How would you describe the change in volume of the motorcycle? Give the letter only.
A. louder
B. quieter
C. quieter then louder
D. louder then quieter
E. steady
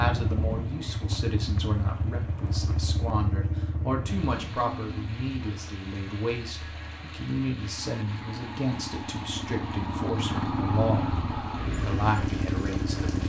C.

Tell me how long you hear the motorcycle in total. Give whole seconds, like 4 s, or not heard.
13 s.